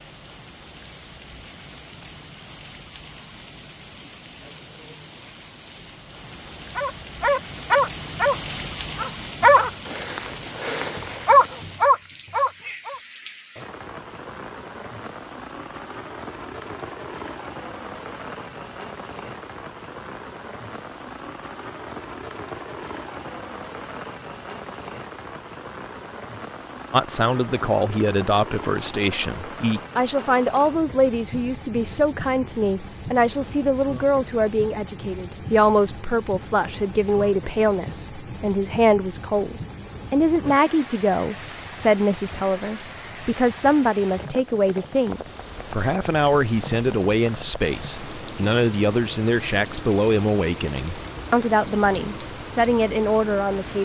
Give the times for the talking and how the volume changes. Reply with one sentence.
You can hear the talking from 26.9 to 53.8 s, at a steady volume.